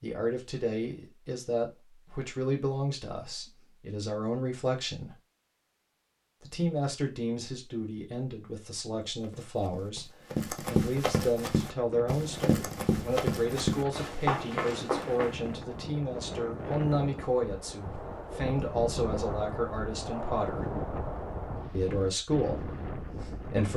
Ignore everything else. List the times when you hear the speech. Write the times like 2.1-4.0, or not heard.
0.0-5.2, 6.4-20.6, 21.7-23.7.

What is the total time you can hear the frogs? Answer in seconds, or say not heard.
not heard.